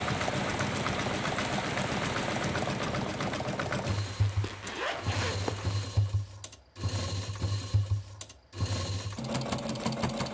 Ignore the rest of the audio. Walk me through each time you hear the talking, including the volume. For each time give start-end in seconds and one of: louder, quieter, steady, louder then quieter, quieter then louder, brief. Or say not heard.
not heard.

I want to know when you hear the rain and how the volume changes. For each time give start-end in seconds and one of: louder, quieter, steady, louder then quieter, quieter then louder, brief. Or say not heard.
0.0-5.9 quieter.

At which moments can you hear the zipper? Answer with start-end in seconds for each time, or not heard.
4.0-6.2.